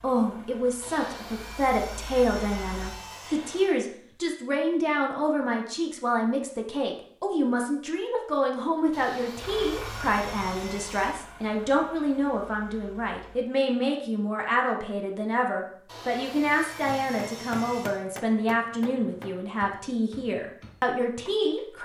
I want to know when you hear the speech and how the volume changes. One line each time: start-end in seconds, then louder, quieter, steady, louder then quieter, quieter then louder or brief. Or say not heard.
0.0-21.8 steady.